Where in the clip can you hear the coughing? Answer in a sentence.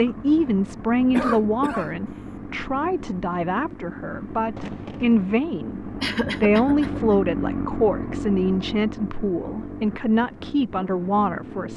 The coughing can be heard from 1.1 to 2.4 s and from 6.0 to 7.2 s.